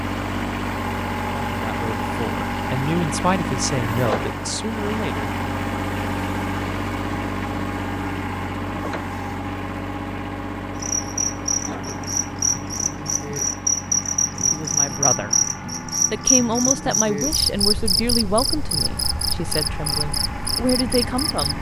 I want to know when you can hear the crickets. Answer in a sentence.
You can hear the crickets from 10.8 to 21.5 s.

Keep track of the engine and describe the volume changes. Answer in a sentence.
The loudness of the engine goes down.